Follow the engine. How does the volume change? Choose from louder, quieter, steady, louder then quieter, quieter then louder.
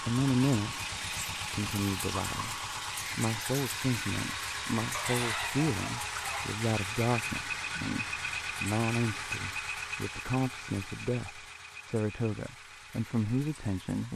quieter.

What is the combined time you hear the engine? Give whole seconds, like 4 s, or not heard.
14 s.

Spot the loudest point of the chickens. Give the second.
5 s.